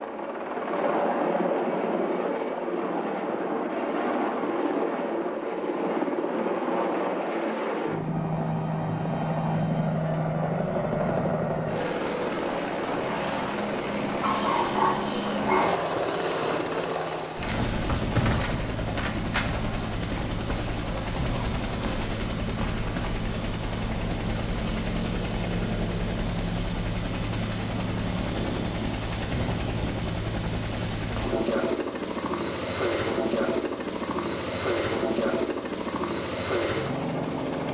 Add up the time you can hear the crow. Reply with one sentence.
You can't hear the crow here.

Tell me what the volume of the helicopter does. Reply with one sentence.
The volume of the helicopter stays about the same.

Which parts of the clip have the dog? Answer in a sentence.
You can hear the dog from 14.2 to 15.8 s.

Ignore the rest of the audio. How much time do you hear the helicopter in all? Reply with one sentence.
The helicopter can be heard for 38 seconds in total.